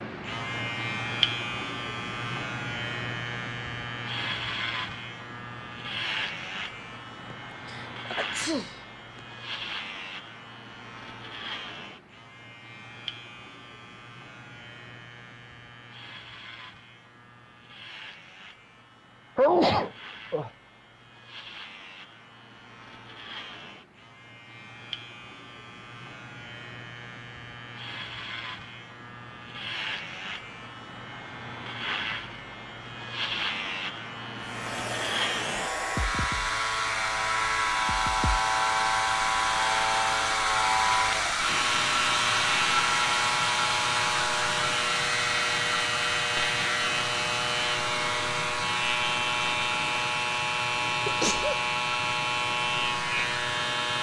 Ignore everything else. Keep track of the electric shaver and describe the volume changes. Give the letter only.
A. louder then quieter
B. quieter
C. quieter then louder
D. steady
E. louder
C.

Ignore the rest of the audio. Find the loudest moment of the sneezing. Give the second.
20 s.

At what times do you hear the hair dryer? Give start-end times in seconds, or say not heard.
34.4-53.9.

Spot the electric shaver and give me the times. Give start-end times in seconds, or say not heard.
0.0-53.9.